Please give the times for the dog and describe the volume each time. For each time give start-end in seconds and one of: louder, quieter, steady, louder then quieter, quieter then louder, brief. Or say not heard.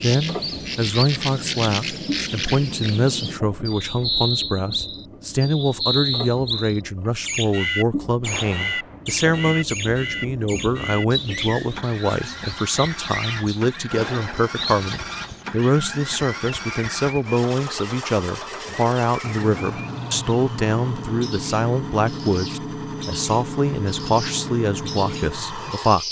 not heard.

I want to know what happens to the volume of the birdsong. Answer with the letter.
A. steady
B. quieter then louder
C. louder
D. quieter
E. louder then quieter
D.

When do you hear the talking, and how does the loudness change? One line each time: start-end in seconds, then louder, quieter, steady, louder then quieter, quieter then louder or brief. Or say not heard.
0.0-26.0 steady.